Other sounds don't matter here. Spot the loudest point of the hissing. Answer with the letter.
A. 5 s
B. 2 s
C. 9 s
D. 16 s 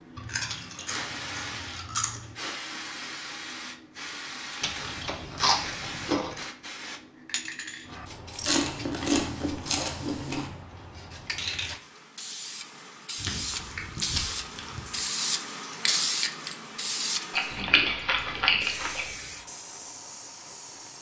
D.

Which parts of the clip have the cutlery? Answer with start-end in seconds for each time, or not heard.
not heard.